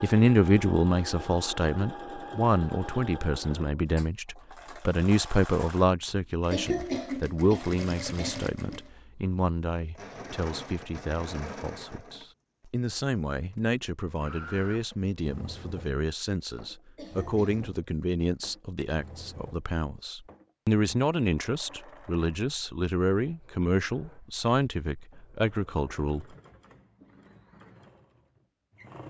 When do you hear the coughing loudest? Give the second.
7 s.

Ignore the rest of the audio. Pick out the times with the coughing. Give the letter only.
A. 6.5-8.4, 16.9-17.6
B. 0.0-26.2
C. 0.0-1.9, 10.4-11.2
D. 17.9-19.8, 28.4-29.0
A.